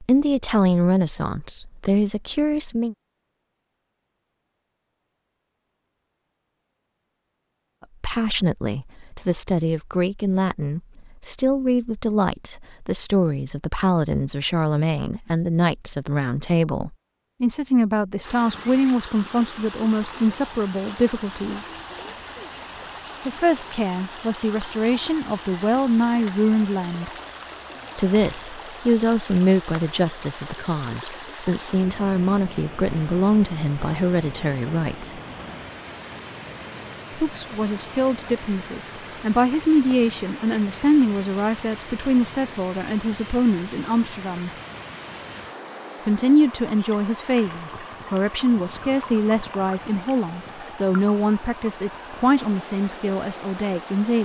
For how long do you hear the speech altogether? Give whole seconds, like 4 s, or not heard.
43 s.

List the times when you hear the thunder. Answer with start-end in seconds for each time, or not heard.
not heard.